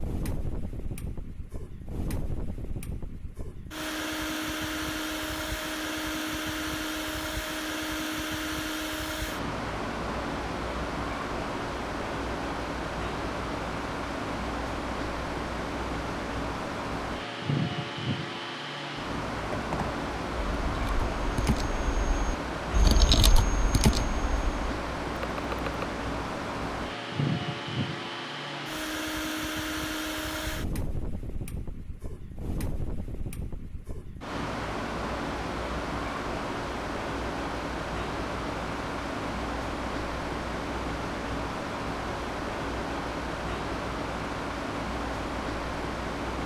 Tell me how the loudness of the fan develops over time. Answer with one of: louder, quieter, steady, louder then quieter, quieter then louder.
steady.